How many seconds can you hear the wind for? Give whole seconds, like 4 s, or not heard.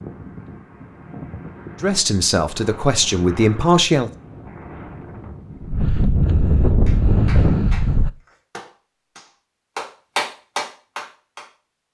8 s.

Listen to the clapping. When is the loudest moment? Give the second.
10 s.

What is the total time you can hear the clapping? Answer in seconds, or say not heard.
5 s.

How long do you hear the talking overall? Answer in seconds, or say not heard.
2 s.